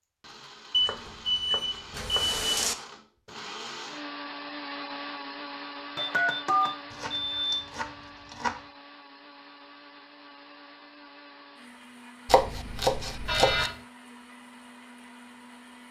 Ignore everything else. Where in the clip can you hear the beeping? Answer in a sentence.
The beeping can be heard from 0.7 to 2.8 s, from 6.0 to 7.6 s and from 13.2 to 13.8 s.